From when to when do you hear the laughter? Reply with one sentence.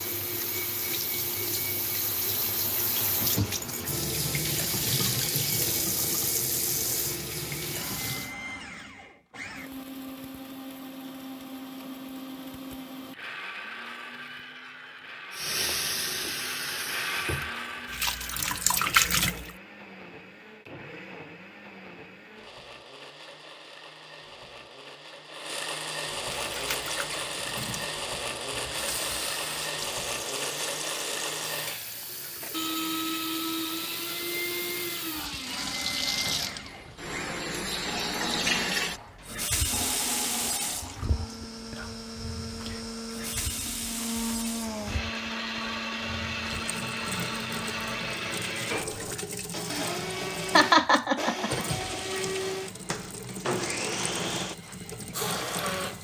You can hear the laughter from 50.5 to 51.6 s.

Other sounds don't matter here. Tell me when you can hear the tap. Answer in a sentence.
The tap can be heard from 0.0 to 8.3 s, from 15.3 to 19.5 s and from 26.2 to 55.9 s.